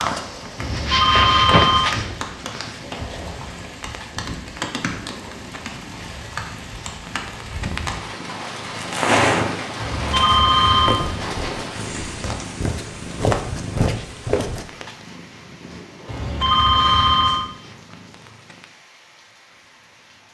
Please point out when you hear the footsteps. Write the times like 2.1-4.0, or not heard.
10.8-14.7.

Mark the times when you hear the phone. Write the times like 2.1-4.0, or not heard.
0.6-1.9, 9.8-11.0, 16.1-17.4.